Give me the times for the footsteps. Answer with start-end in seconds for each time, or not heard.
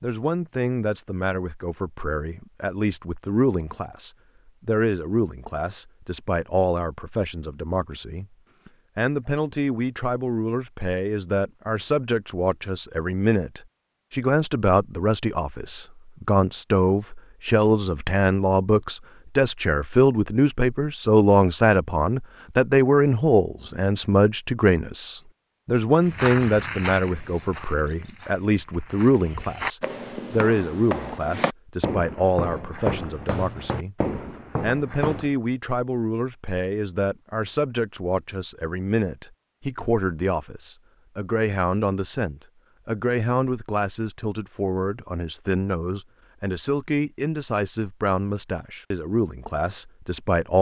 25.9-35.3.